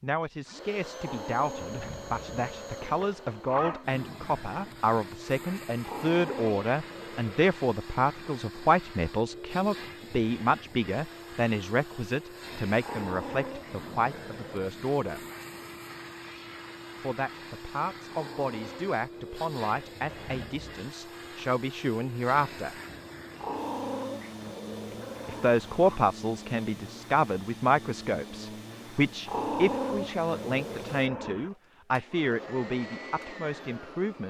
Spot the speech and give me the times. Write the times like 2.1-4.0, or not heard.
0.0-15.2, 17.0-22.8, 25.2-34.2.